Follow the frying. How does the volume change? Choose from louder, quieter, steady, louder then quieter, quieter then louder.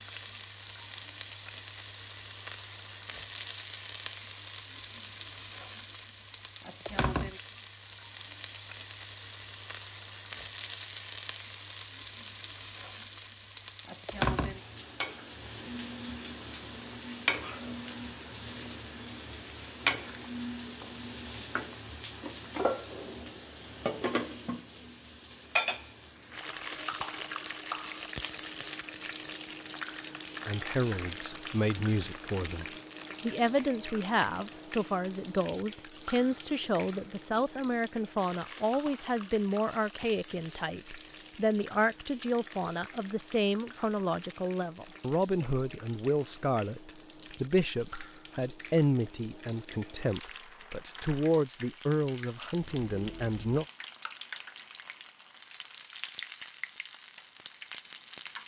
quieter.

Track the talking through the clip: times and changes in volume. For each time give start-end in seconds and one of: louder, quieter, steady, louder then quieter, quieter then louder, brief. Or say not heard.
30.4-53.6 steady.